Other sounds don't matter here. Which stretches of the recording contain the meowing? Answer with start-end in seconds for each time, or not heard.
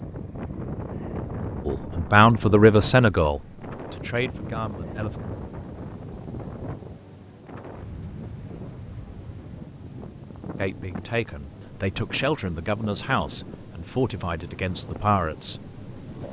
not heard.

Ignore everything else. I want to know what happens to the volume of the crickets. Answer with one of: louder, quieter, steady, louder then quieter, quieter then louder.
louder.